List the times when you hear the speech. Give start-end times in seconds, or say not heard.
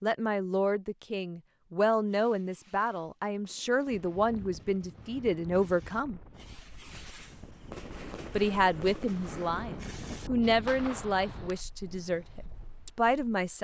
0.0-6.2, 8.3-13.5.